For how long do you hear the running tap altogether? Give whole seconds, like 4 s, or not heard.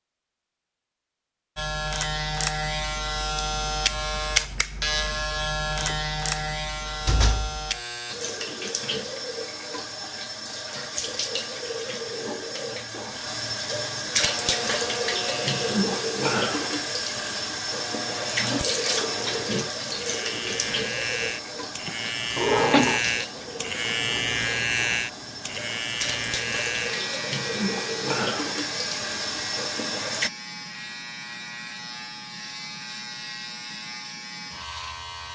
22 s.